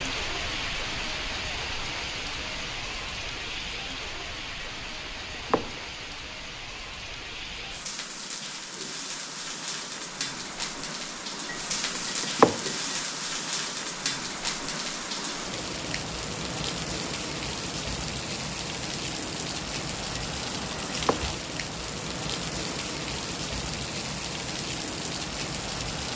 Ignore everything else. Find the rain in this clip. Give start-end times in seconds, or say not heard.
0.0-26.1.